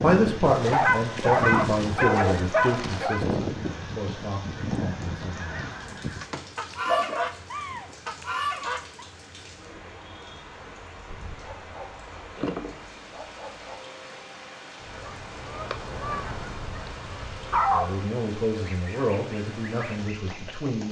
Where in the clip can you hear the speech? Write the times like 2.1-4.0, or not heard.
0.0-5.7, 17.7-20.8.